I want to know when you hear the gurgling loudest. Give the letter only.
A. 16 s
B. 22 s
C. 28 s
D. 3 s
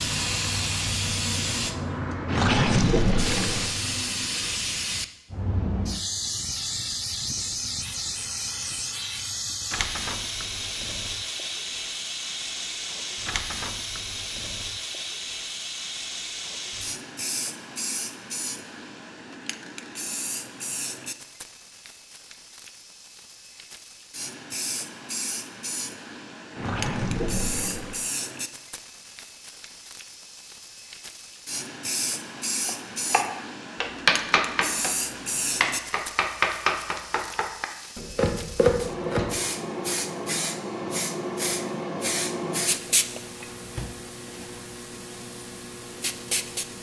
D.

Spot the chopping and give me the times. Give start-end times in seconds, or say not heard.
32.6-39.4.